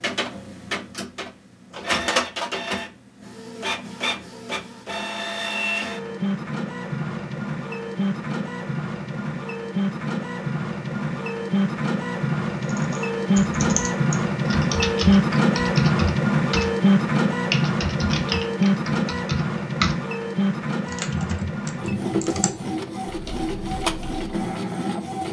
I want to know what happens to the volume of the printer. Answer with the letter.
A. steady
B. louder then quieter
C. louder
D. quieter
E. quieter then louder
B.